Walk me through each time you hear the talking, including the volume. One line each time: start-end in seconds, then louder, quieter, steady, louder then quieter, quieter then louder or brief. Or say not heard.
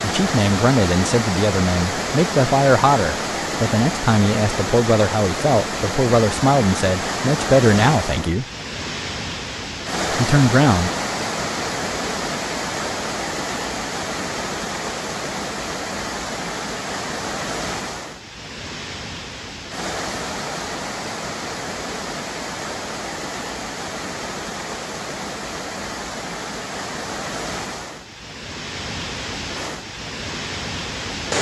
0.0-8.4 steady
10.1-10.9 brief.